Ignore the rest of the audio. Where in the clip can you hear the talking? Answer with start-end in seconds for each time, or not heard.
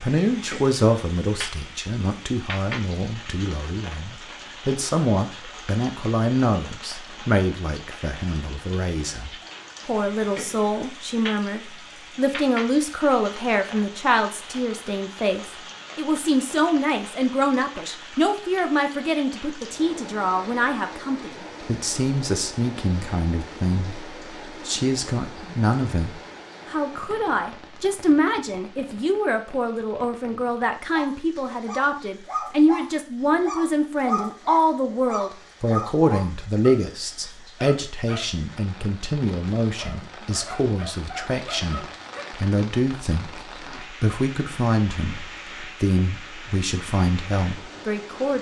0.0-48.3.